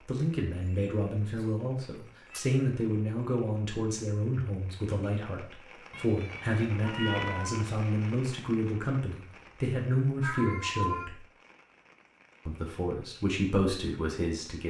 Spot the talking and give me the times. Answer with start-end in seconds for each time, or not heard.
0.1-11.2, 12.4-14.6.